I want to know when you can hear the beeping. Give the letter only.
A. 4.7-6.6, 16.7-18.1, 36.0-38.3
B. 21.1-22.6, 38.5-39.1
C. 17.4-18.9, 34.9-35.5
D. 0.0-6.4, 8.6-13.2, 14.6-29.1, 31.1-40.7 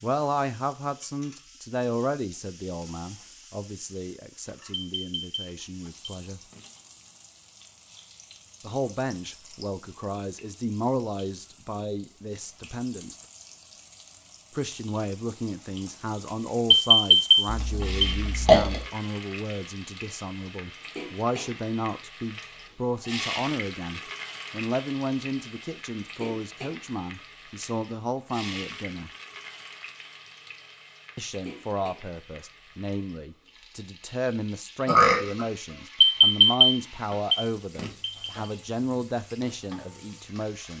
A.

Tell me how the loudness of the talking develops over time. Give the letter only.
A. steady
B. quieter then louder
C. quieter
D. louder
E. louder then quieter
A.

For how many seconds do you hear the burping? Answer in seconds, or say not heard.
2 s.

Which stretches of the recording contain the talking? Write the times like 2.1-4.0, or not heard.
0.0-6.4, 8.6-13.2, 14.6-29.1, 31.1-40.7.